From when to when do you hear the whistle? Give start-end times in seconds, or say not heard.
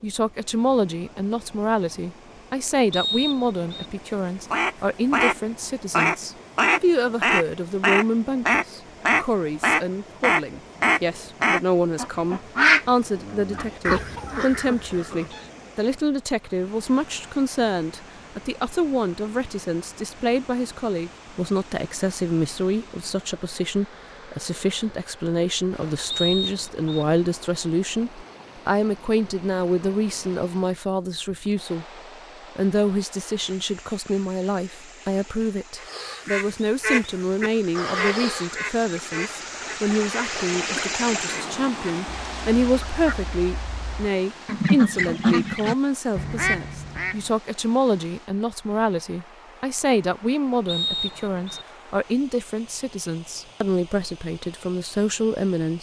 2.9-3.9, 26.1-27.1, 50.6-51.6.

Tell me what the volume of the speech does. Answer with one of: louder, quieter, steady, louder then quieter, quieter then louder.
steady.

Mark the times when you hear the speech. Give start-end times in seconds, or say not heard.
0.0-31.9, 32.5-55.7.